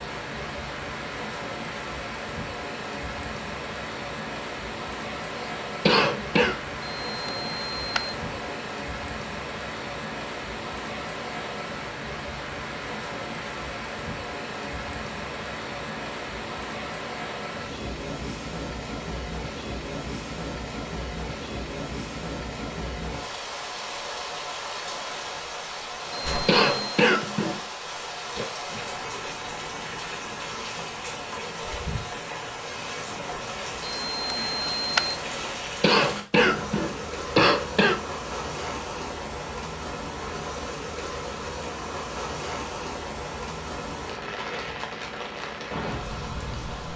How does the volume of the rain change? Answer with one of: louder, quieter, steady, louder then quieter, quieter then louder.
steady.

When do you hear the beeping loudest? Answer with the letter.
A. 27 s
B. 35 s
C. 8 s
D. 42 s
B.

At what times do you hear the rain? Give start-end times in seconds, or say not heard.
0.0-46.9.